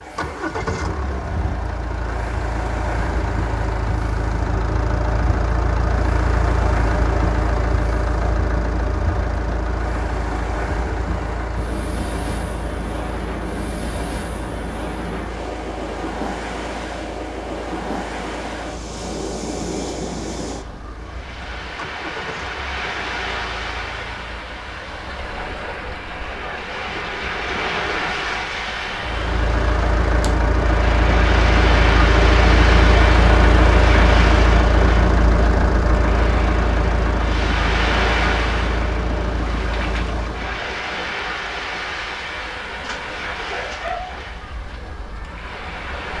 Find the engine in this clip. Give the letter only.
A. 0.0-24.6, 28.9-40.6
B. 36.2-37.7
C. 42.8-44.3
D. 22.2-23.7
A.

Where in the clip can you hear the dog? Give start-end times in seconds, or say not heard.
42.8-44.3.